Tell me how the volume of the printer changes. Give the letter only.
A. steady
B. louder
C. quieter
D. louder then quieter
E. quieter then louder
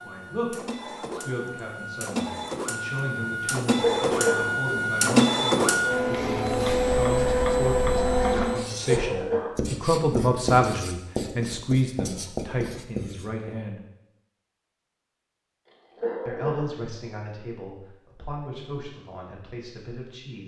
B.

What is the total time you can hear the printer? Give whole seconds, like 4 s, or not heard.
9 s.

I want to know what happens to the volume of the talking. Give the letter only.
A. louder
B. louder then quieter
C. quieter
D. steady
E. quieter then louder
B.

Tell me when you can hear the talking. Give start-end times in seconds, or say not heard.
0.0-13.8, 16.2-20.4.